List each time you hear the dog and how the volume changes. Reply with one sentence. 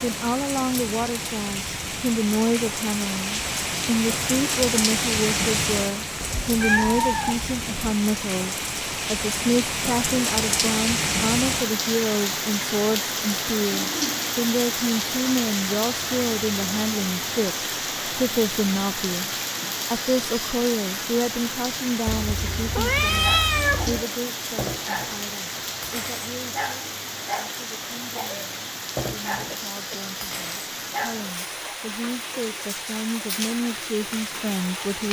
The dog can be heard from 23.2 to 31.8 s, at a steady volume.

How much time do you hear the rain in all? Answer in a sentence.
You can hear the rain for 35 seconds altogether.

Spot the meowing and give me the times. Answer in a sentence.
The meowing can be heard from 6.2 to 7.9 s and from 22.1 to 24.1 s.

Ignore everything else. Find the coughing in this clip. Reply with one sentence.
You can hear the coughing from 29.6 to 30.1 s.